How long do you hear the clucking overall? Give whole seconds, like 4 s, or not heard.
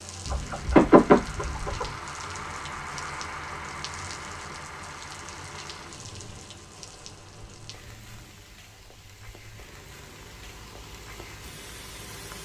2 s.